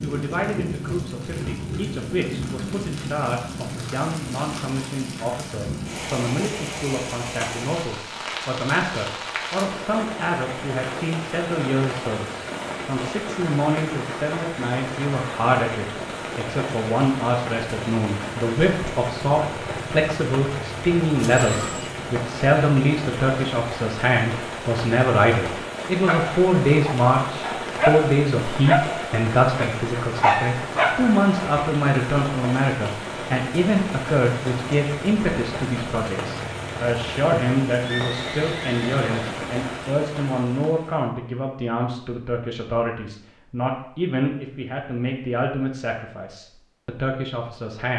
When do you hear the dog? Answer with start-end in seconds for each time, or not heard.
26.1-31.2.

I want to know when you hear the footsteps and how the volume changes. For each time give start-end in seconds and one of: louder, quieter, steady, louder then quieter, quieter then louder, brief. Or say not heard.
not heard.